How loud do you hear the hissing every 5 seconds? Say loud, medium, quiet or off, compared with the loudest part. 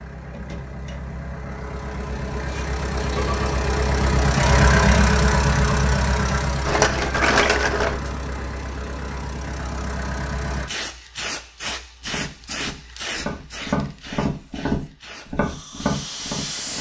off, off, loud, loud.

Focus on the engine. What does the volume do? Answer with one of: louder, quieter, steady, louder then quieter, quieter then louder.
louder then quieter.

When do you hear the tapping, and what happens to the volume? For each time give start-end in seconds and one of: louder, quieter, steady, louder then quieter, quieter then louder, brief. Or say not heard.
12.1-16.7 louder.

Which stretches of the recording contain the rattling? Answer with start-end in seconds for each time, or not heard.
6.7-8.0.